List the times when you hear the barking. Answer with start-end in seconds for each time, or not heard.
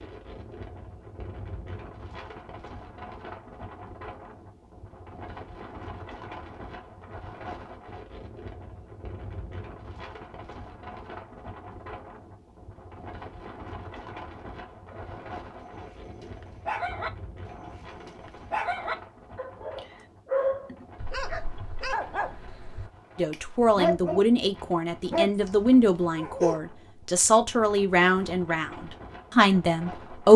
14.9-26.6.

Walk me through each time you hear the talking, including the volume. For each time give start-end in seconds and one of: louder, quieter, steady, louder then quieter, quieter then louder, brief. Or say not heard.
23.1-30.3 steady.